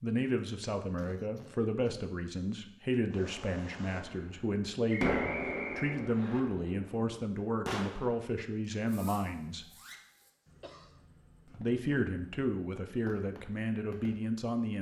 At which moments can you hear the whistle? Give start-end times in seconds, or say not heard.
4.8-6.4.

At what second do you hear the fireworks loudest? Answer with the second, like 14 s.
5 s.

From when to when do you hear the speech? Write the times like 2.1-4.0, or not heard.
0.0-9.7, 11.5-14.7.